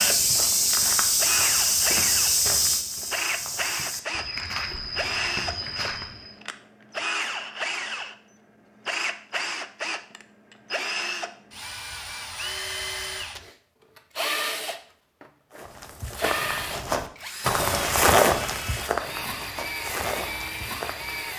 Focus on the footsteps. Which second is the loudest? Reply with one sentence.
The volume of the footsteps peaks at 18 seconds.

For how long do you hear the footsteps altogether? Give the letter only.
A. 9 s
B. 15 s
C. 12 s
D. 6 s
C.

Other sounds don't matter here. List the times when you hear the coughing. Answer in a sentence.
You can't hear the coughing here.